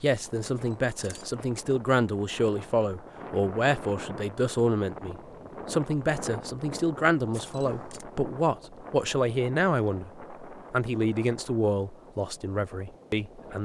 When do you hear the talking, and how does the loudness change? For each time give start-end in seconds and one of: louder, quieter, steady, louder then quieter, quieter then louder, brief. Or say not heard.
0.0-13.5 steady.